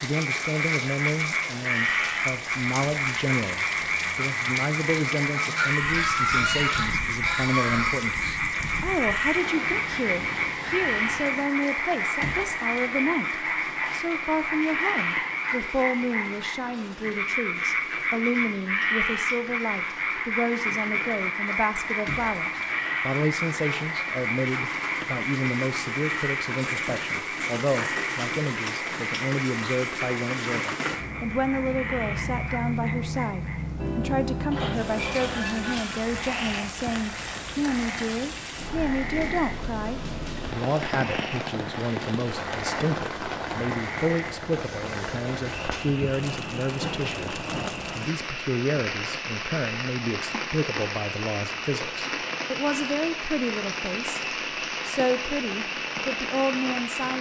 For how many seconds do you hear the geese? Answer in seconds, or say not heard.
4 s.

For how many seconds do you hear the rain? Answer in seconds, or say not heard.
57 s.